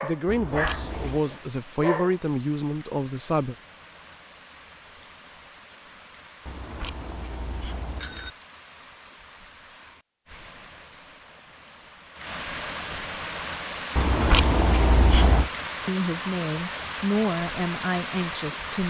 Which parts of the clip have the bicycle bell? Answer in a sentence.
You can hear the bicycle bell from 0.2 to 1.2 s, from 6.5 to 8.3 s and from 13.9 to 15.5 s.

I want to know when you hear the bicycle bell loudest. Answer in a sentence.
The volume of the bicycle bell peaks at 14 seconds.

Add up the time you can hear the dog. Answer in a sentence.
You can hear the dog for 2 seconds altogether.